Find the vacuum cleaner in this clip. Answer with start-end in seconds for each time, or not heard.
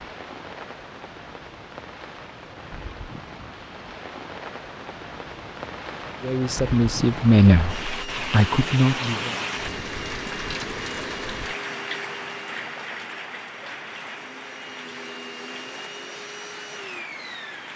7.7-17.7.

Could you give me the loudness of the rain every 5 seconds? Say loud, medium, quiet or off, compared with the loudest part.
medium, loud, loud, medium.